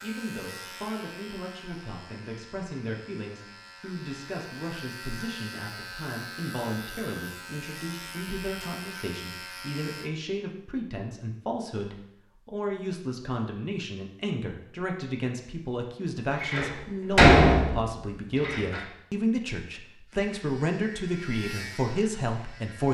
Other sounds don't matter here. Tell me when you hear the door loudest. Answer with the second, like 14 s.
17 s.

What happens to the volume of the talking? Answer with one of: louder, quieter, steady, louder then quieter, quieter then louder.
louder.